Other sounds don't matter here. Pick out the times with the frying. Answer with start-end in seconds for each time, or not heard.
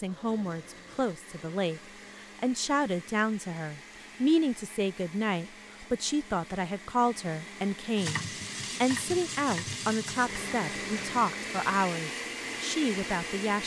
8.0-11.3.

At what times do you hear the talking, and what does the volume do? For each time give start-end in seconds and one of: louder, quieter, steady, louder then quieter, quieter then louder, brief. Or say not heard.
0.0-13.6 steady.